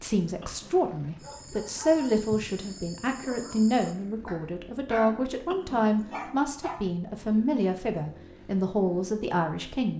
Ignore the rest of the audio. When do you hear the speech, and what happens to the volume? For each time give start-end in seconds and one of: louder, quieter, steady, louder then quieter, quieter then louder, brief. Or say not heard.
0.0-9.9 steady.